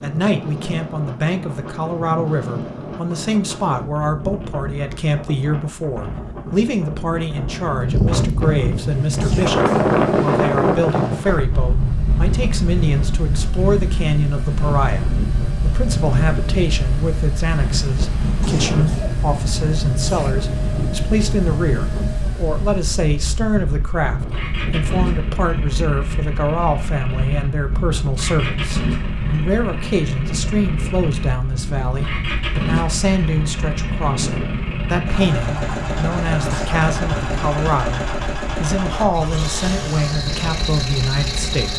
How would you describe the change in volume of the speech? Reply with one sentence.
The volume of the speech stays about the same.